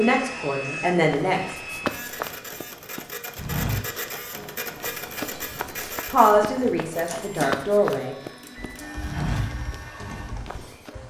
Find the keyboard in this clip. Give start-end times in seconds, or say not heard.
8.6-11.0.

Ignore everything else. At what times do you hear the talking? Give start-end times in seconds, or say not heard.
0.0-1.4, 6.0-8.2.